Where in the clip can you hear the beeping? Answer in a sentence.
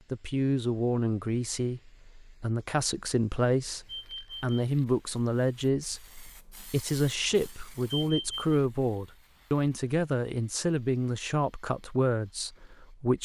The beeping can be heard from 3.9 to 4.6 s and from 8.0 to 8.6 s.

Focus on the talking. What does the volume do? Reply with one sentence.
The volume of the talking stays about the same.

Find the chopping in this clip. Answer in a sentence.
You can't hear the chopping here.